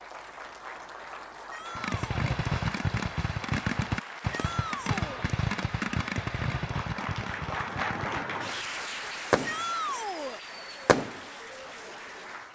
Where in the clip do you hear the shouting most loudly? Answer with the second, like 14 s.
10 s.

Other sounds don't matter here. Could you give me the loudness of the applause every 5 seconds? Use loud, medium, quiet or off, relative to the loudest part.
medium, loud, medium.